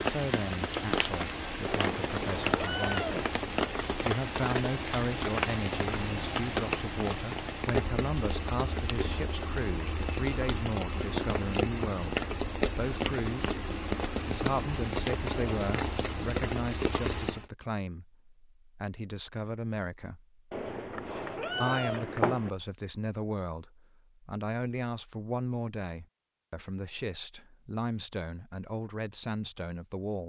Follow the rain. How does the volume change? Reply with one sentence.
The loudness of the rain stays about the same.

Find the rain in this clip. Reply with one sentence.
You can hear the rain from 0.0 to 17.4 s.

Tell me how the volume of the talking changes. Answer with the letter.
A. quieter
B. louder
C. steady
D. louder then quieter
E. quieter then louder
C.